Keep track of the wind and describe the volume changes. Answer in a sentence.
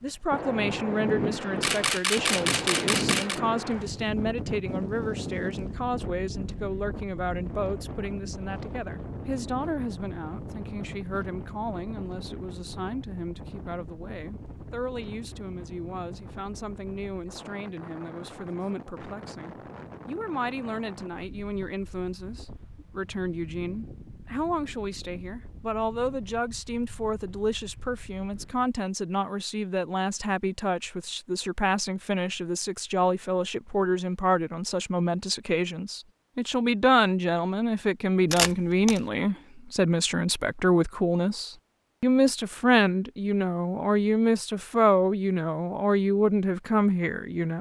The loudness of the wind goes down.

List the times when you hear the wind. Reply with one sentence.
The wind can be heard from 0.0 to 28.8 s.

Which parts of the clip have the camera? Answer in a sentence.
The camera can be heard from 1.6 to 3.4 s and from 38.3 to 39.0 s.